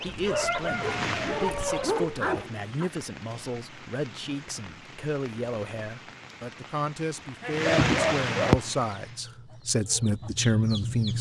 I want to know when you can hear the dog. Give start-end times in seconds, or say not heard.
0.8-2.9, 7.4-8.6.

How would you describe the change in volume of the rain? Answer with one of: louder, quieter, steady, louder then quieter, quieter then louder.
quieter then louder.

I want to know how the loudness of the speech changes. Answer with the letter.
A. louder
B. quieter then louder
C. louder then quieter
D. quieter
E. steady
A.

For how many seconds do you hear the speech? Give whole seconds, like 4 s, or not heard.
11 s.